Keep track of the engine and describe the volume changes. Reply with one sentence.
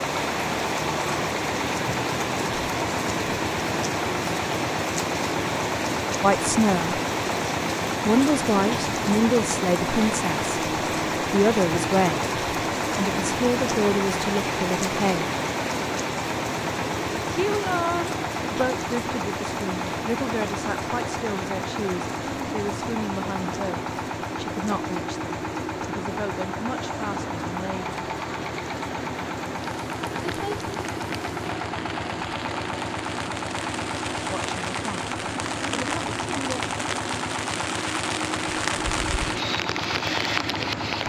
The volume of the engine stays about the same.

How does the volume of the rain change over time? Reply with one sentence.
The volume of the rain goes down, then up.